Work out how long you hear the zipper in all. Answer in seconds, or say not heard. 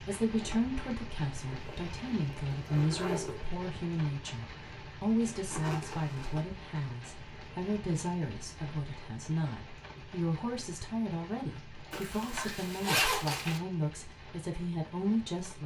5 s.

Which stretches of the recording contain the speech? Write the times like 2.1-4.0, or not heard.
0.0-15.6.